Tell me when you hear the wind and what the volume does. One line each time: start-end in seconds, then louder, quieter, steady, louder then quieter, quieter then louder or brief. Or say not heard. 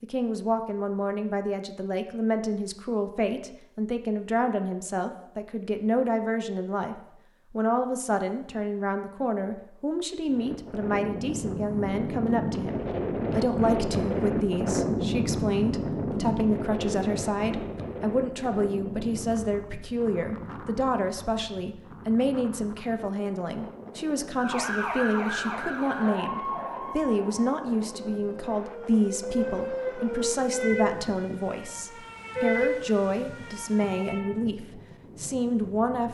10.2-36.1 quieter.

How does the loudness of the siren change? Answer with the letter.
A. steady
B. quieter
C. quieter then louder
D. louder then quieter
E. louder
C.